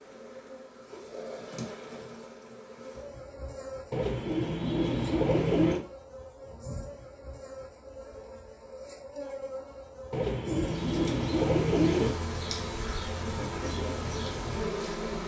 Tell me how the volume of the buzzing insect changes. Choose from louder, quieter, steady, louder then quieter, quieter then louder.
louder.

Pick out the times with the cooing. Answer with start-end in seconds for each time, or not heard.
3.9-5.8, 10.1-12.2.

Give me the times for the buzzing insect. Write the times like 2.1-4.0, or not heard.
0.0-15.2.